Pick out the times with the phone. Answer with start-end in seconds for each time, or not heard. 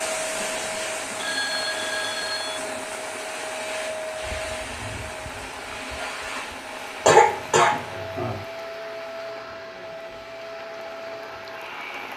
1.1-2.6.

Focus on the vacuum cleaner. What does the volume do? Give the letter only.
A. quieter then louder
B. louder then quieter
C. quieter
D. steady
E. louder
C.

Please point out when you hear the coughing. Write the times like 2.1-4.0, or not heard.
7.0-8.4.